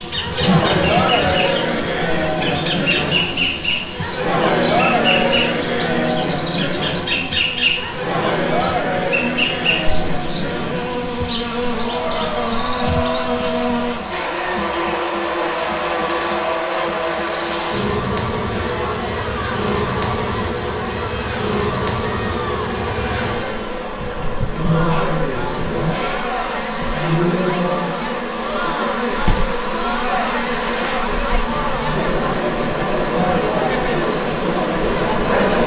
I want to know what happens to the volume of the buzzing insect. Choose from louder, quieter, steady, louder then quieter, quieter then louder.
steady.